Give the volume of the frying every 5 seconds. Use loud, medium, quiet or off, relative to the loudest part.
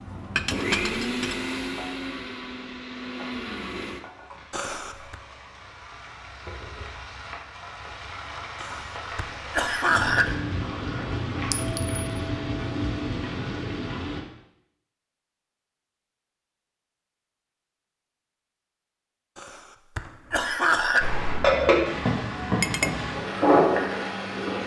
quiet, quiet, medium, off, loud.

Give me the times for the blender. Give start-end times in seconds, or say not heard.
0.0-4.4.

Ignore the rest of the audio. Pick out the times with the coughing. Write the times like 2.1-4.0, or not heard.
4.5-5.2, 8.6-10.3, 19.4-21.1.